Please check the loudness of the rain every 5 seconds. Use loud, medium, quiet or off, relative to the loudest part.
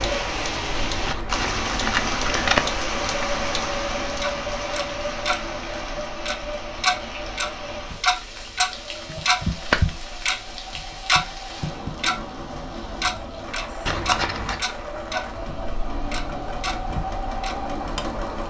loud, medium, medium, medium.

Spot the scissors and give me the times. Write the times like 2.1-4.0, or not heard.
1.1-2.6, 9.1-9.9, 13.8-14.6.